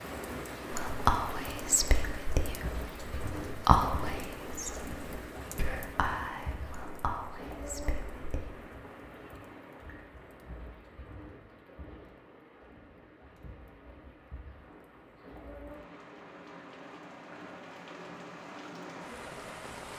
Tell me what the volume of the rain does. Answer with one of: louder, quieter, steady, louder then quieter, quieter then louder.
quieter then louder.